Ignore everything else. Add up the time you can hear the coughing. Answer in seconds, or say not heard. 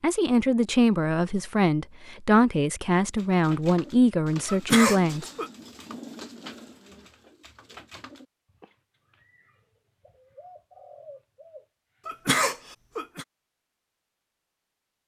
2 s.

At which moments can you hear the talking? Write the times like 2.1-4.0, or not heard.
0.0-5.2.